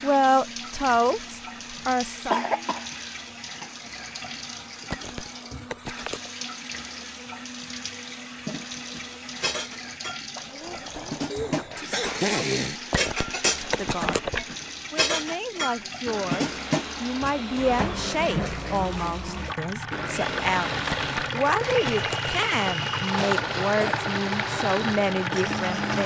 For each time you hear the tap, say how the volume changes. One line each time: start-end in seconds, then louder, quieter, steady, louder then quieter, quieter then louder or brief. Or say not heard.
0.0-26.0 louder.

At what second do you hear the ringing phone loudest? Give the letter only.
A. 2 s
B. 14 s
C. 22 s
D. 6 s
B.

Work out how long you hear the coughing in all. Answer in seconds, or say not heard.
3 s.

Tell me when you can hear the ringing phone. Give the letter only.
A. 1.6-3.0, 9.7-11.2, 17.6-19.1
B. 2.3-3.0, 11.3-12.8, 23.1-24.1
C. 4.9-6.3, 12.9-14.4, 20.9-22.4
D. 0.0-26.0
C.